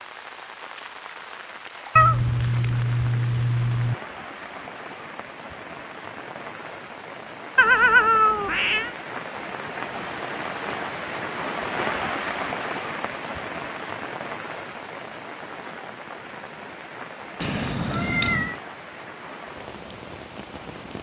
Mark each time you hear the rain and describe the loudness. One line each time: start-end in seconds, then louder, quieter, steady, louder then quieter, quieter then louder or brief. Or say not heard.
0.0-20.9 louder then quieter.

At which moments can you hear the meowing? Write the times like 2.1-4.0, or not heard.
1.9-4.0, 7.5-8.9, 17.4-18.6.